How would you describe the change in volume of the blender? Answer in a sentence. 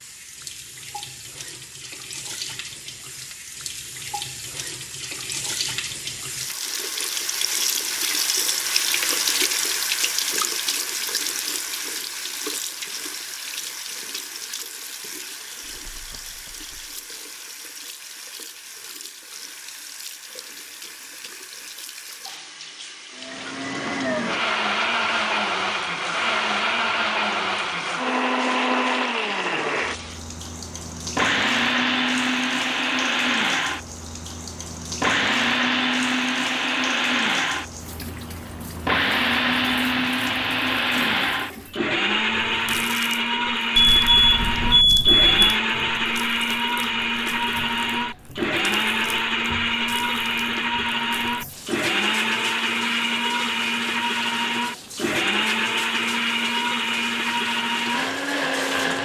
The loudness of the blender stays about the same.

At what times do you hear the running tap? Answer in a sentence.
You can hear the running tap from 0.0 to 59.0 s.